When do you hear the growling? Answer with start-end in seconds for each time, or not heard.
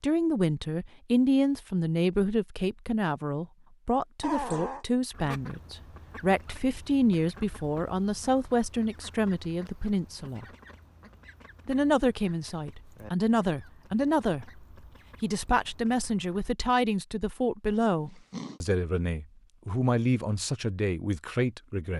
4.2-4.8, 17.6-18.6.